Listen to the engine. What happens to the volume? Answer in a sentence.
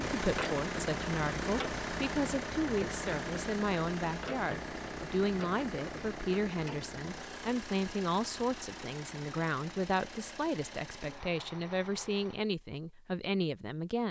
The volume of the engine goes down.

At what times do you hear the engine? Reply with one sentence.
You can hear the engine from 0.0 to 12.5 s.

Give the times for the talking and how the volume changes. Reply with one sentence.
The talking can be heard from 0.1 to 14.0 s, at a steady volume.